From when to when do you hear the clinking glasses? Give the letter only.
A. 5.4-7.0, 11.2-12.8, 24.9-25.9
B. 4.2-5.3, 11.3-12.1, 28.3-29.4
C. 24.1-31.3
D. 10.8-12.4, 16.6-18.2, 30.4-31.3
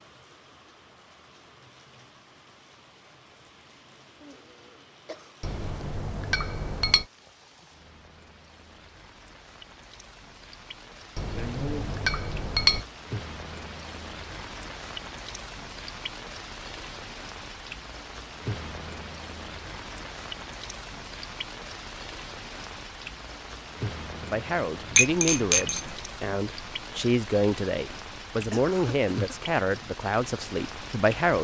A.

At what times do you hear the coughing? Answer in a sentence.
The coughing can be heard from 4.2 to 5.3 s, from 11.3 to 12.1 s and from 28.3 to 29.4 s.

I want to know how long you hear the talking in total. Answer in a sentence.
You can hear the talking for 7 seconds altogether.